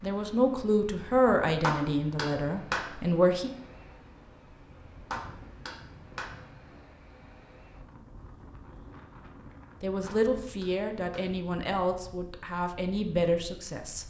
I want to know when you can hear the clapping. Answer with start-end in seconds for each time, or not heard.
1.6-2.9, 5.1-6.3, 10.1-11.3.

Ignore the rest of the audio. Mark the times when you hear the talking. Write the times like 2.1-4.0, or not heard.
0.0-3.5, 9.8-14.0.